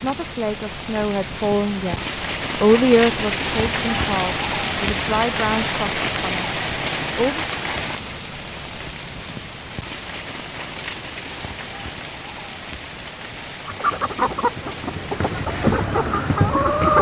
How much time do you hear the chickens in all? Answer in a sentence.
You can hear the chickens for 3 seconds altogether.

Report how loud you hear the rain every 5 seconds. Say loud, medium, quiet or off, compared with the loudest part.
loud, loud, medium, medium.